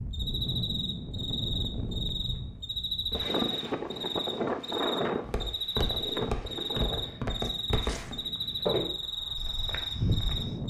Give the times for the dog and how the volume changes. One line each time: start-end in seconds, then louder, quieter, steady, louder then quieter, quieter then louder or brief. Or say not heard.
not heard.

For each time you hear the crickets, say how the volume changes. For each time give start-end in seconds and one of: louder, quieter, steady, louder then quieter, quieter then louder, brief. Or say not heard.
0.1-10.6 steady.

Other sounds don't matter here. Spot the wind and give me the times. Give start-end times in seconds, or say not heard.
0.0-10.6.